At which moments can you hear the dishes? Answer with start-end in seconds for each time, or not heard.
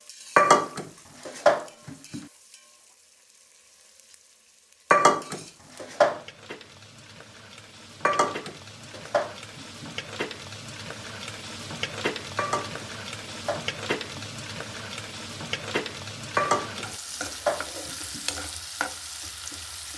0.3-2.2, 4.9-6.2, 8.1-9.9, 12.3-14.2, 16.4-18.2.